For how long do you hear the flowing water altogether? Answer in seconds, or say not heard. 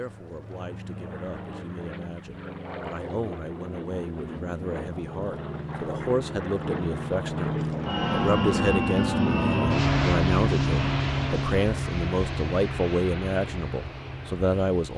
not heard.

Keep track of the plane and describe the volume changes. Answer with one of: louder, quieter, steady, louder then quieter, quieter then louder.
louder then quieter.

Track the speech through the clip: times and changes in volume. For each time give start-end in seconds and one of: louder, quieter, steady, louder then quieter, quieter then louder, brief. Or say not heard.
0.0-14.9 louder.